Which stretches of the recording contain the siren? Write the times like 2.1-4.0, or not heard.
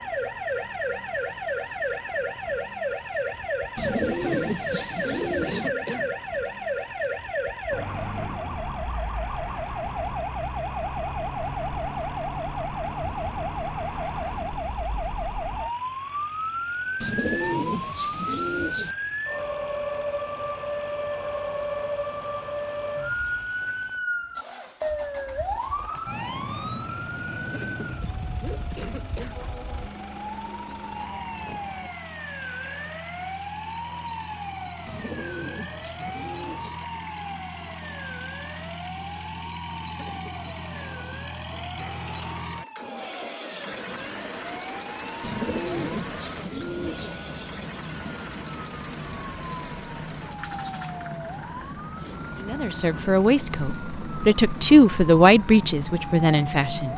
0.0-56.9.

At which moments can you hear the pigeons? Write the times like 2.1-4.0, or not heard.
3.8-5.7, 17.0-18.9, 34.9-36.8, 45.2-47.1.